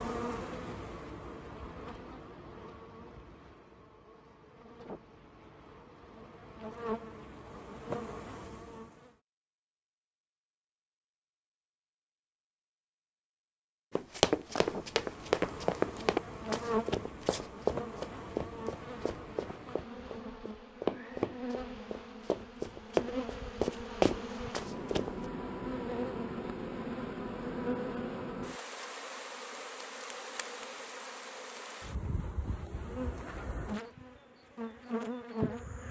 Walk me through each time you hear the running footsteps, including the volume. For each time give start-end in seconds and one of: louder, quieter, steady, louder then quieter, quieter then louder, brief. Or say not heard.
13.9-25.1 quieter then louder.